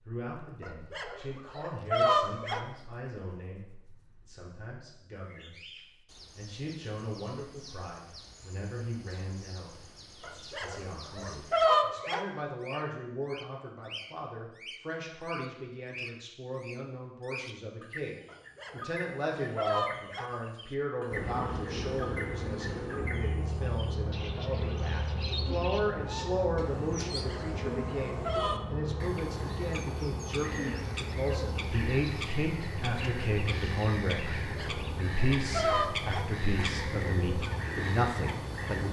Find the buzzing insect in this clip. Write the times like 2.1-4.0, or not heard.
21.1-38.8.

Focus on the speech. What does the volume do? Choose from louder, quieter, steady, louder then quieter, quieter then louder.
louder.